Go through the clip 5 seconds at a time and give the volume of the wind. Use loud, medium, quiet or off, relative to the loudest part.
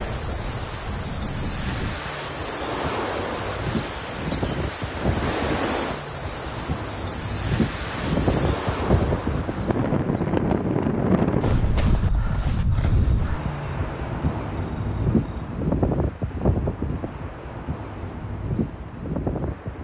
medium, loud, loud, loud.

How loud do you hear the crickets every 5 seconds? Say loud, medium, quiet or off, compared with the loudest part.
loud, loud, quiet, quiet.